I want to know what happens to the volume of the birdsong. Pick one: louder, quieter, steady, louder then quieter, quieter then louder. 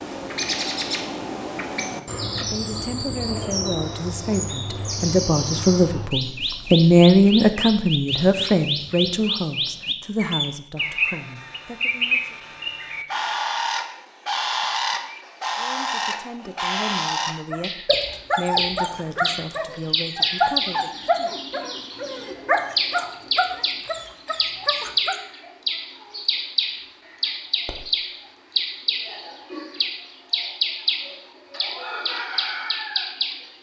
steady.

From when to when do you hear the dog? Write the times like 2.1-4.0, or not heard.
17.5-25.2.